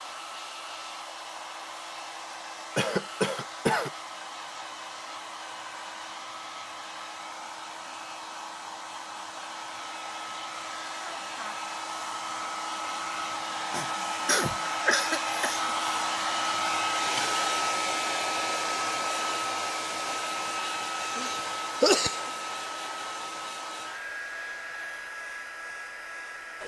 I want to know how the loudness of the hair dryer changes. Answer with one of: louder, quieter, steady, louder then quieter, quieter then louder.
louder then quieter.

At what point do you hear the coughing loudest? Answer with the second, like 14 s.
22 s.